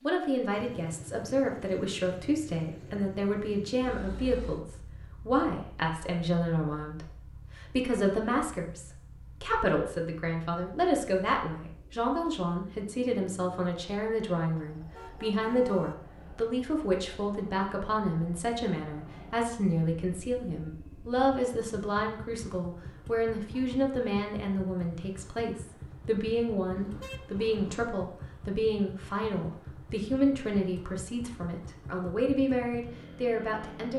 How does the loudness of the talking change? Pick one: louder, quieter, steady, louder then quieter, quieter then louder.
steady.